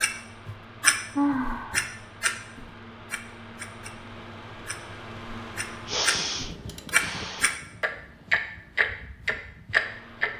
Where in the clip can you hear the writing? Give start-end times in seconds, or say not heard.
not heard.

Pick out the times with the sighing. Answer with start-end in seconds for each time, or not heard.
1.1-1.9, 5.8-7.5.